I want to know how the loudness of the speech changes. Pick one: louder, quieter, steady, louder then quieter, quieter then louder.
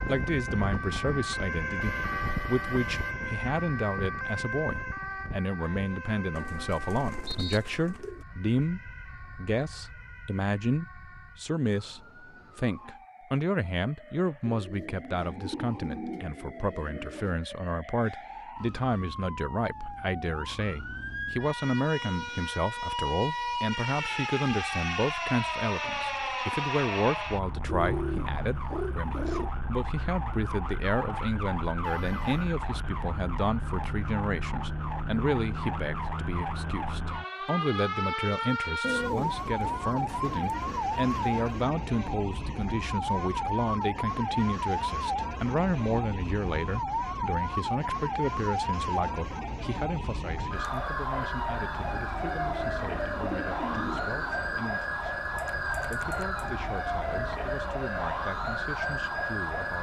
quieter.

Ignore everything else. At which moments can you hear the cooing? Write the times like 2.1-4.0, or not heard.
6.3-8.2, 14.4-17.4, 27.6-29.5, 38.8-41.6, 52.4-54.7.